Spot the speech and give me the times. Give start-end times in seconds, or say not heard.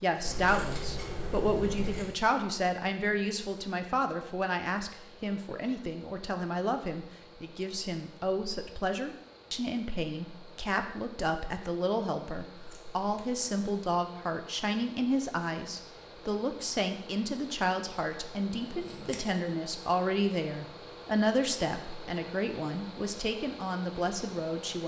0.0-24.8.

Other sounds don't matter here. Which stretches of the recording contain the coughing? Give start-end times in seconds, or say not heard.
not heard.